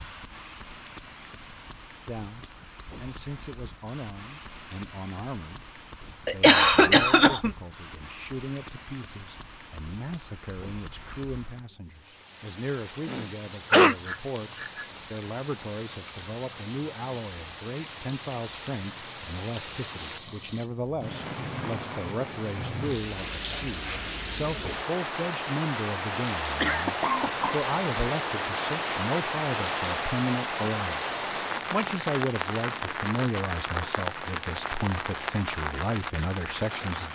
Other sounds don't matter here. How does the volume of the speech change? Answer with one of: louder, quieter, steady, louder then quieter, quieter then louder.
louder.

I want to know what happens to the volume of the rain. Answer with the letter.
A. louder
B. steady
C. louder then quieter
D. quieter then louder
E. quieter
A.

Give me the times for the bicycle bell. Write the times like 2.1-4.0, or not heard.
13.8-14.9.